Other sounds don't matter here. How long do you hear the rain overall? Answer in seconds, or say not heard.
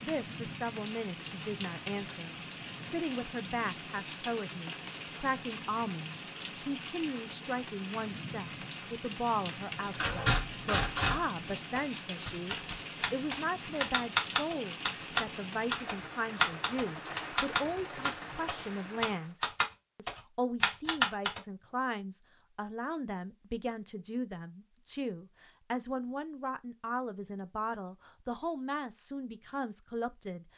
19 s.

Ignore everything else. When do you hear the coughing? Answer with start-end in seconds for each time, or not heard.
not heard.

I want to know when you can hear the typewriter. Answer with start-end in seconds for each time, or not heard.
9.9-21.4.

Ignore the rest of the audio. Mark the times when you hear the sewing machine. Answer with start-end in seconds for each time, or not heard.
not heard.